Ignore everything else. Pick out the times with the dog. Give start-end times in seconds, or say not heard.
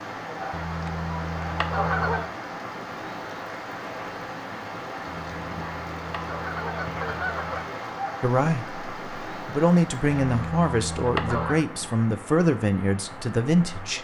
not heard.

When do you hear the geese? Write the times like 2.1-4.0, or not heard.
0.5-2.3, 5.0-7.7, 10.1-11.7.